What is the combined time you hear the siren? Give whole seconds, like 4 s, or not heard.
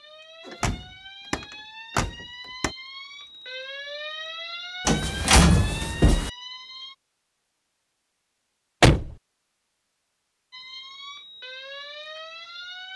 9 s.